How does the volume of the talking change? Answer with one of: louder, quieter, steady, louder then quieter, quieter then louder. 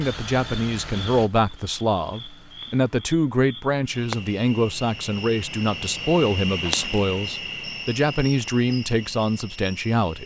steady.